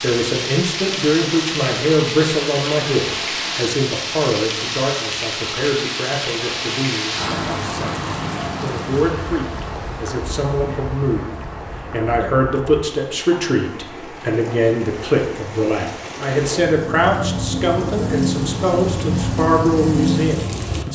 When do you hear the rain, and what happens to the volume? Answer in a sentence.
The rain can be heard from 0.0 to 20.8 s, getting quieter then louder.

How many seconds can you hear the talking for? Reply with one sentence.
The talking can be heard for 21 seconds in total.